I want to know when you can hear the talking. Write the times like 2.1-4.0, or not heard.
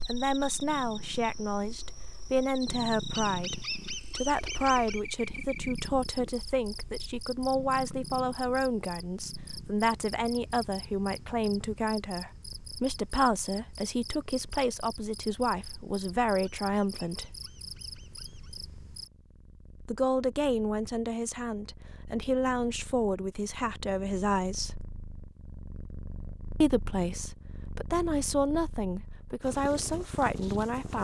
0.1-17.4, 19.9-24.9, 26.6-31.0.